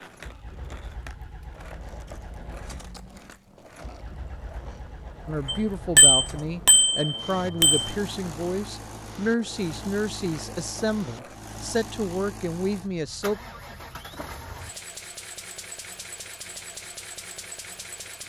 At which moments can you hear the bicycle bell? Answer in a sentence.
The bicycle bell can be heard from 5.5 to 7.9 s.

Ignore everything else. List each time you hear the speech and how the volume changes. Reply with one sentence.
The speech can be heard from 5.2 to 13.4 s, at a steady volume.